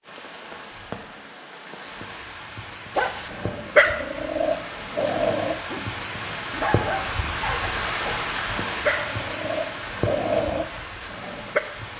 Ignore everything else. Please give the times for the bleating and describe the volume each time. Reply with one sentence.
The bleating can't be heard in this clip.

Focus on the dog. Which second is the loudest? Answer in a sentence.
The loudest moment of the dog is at 4 seconds.